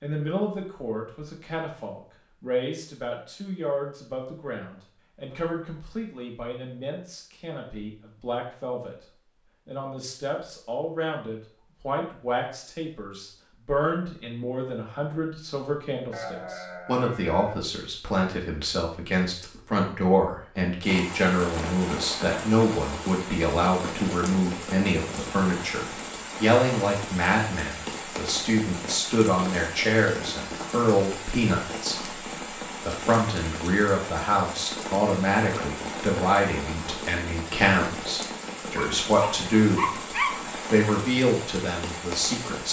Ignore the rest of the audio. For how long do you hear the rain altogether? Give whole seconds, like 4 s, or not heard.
22 s.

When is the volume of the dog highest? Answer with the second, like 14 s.
40 s.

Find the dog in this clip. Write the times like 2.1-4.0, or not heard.
38.8-40.5.